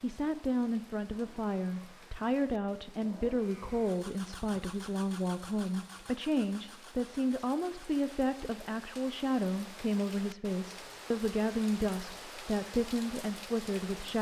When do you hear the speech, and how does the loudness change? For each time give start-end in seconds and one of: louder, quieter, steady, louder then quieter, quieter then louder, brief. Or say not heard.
0.0-14.1 steady.